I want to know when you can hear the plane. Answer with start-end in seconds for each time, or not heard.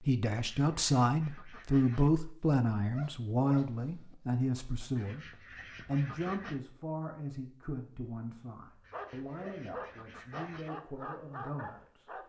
not heard.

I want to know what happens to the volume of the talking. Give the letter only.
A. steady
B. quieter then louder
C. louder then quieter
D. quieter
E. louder
D.